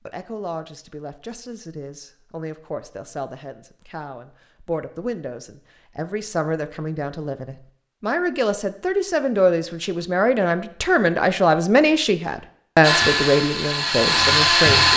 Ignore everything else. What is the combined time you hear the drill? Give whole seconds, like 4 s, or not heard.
2 s.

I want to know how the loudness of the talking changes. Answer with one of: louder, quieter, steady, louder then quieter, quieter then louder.
louder.